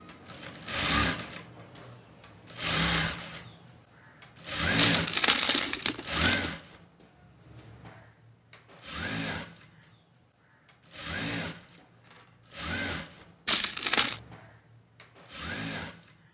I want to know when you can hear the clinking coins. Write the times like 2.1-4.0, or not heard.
4.8-6.5, 13.4-14.2.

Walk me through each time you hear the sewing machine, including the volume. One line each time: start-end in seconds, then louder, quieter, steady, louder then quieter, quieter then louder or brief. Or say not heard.
0.0-16.3 quieter.